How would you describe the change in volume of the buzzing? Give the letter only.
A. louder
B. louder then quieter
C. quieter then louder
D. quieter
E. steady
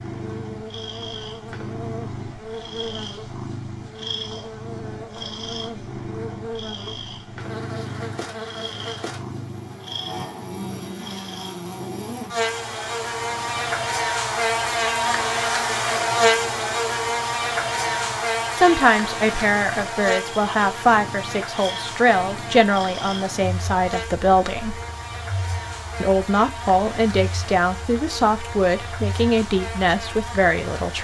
B.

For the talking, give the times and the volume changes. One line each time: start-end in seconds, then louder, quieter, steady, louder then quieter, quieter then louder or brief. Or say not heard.
18.6-24.8 steady
26.0-30.9 steady.